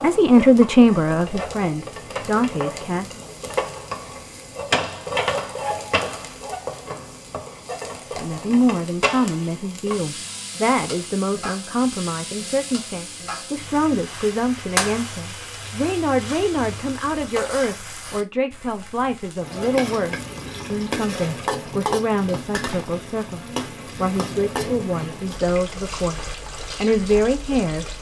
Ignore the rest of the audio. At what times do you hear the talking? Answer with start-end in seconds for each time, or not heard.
0.0-3.2, 8.2-27.9.